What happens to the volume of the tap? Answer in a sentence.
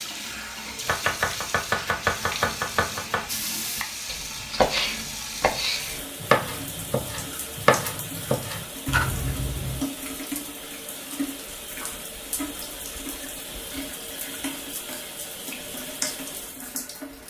The loudness of the tap stays about the same.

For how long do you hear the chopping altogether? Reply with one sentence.
You can hear the chopping for 9 seconds altogether.